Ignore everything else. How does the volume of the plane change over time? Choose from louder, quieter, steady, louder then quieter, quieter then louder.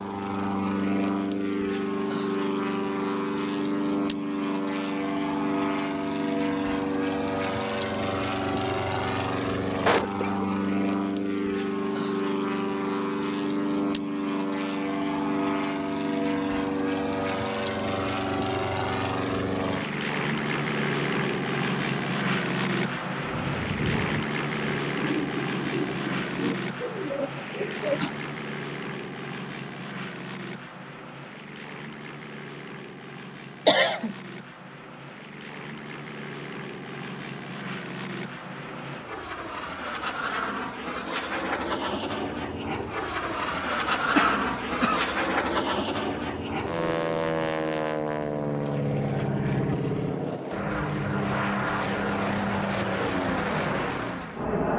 quieter then louder.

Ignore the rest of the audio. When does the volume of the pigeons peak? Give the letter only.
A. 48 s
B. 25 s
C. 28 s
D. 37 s
C.